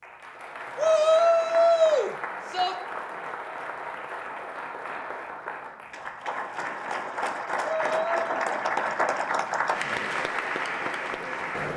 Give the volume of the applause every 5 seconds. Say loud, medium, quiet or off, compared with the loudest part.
medium, loud, loud.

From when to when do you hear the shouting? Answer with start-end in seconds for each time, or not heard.
0.8-2.8, 7.6-8.3.